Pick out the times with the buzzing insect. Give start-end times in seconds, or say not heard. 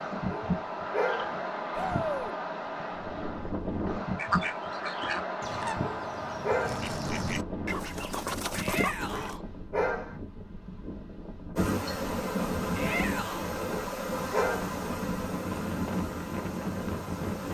11.6-17.4.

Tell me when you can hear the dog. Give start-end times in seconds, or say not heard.
0.3-1.4, 5.8-6.9, 9.1-10.2, 13.7-14.8.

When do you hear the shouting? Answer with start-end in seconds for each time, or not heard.
1.7-2.3, 8.6-9.4, 12.7-13.5.